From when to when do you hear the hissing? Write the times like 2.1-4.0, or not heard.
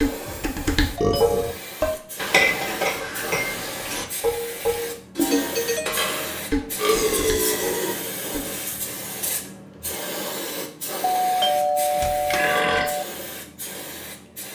0.0-14.5.